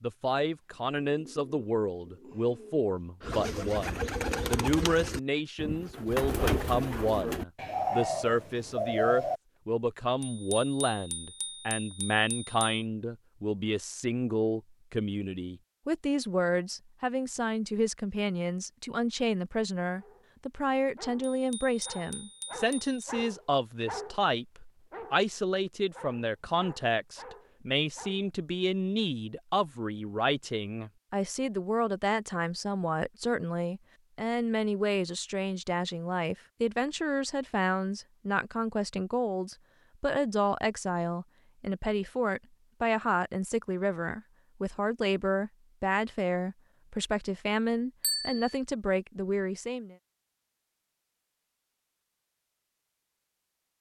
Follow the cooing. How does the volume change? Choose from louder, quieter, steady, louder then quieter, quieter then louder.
louder.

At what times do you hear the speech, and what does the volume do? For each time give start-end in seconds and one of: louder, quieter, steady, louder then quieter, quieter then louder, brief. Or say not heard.
0.0-50.0 steady.